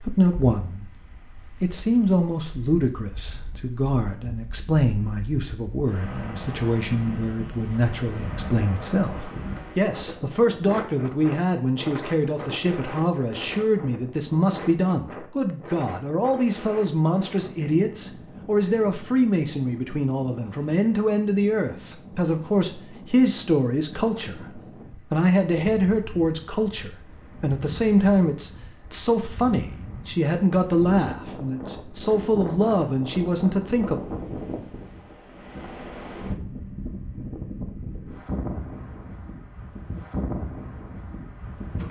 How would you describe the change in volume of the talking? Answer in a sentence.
The loudness of the talking stays about the same.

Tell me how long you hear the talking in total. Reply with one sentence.
The talking can be heard for 34 seconds in total.